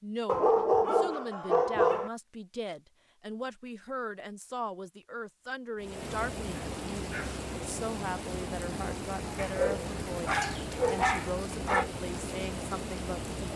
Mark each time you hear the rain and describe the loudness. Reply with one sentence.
You can hear the rain from 5.8 to 13.5 s, at a steady volume.